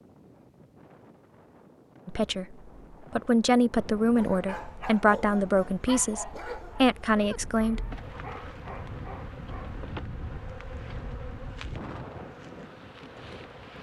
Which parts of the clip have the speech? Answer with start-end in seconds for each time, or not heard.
2.0-8.0.